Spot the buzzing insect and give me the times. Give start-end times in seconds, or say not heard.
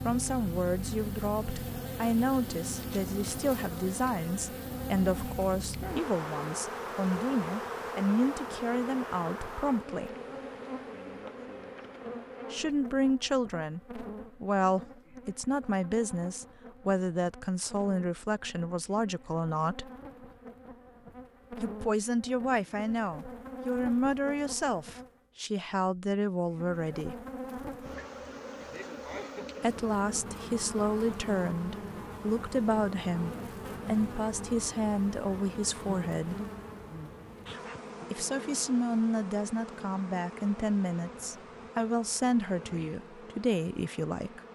0.0-25.2, 26.4-44.5.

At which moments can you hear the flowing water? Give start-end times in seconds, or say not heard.
not heard.